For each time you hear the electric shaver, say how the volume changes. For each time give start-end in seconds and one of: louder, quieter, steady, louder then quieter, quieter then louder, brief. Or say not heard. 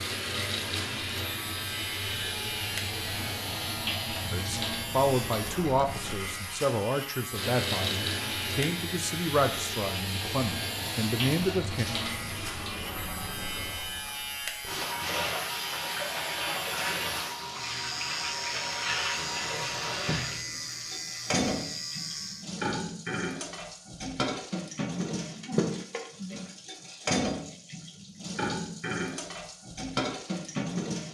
0.0-22.5 steady.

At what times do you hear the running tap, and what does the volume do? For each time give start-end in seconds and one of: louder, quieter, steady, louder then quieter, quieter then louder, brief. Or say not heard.
0.0-31.0 steady.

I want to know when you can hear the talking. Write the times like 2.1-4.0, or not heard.
4.3-11.8.